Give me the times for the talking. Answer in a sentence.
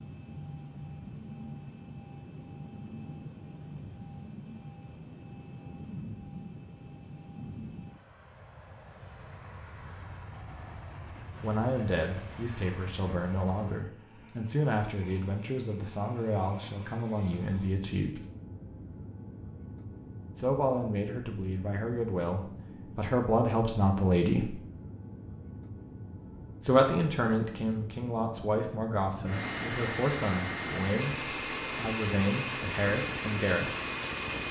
The talking can be heard from 11.4 to 18.2 s, from 20.4 to 24.6 s and from 26.6 to 33.8 s.